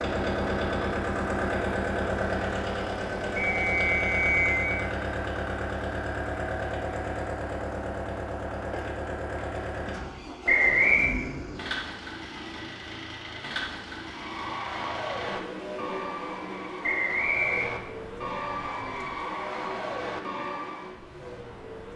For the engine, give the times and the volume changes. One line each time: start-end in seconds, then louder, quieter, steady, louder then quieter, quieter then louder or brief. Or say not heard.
0.0-21.9 quieter.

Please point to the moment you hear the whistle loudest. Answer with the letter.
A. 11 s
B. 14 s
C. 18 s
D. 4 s
A.